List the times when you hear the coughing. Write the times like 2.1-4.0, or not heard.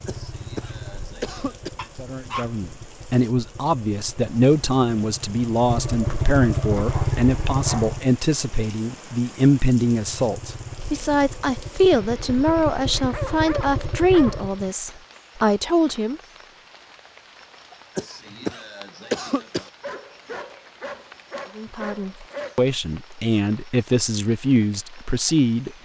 0.1-1.7, 17.9-19.7.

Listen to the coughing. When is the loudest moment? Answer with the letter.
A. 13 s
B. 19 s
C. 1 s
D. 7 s
B.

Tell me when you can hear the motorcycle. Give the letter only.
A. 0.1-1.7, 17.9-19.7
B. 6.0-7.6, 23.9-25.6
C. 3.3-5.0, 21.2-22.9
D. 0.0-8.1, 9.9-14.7
D.